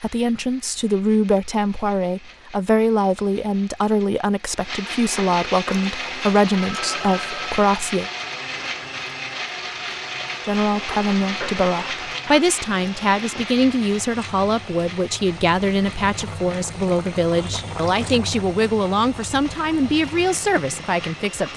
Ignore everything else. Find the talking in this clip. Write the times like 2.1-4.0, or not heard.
0.0-8.1, 10.4-21.5.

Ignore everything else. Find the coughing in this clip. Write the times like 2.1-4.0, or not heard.
not heard.